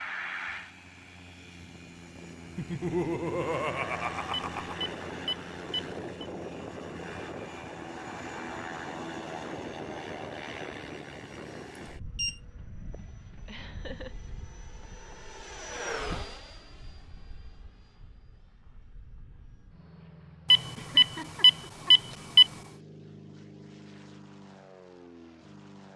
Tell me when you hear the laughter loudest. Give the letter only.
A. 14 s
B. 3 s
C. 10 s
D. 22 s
B.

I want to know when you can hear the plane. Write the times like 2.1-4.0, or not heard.
0.0-25.9.